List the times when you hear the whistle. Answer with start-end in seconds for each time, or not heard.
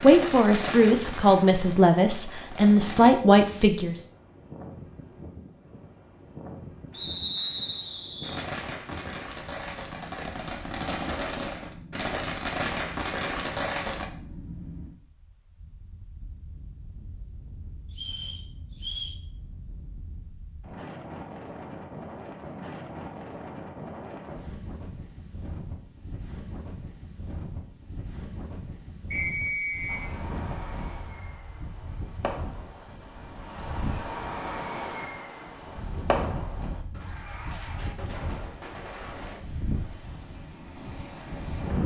6.9-8.4, 17.9-19.2, 29.1-30.1.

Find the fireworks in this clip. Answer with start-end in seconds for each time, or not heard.
0.0-3.1, 8.2-14.1, 29.9-39.4.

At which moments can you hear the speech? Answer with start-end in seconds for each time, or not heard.
0.0-4.0.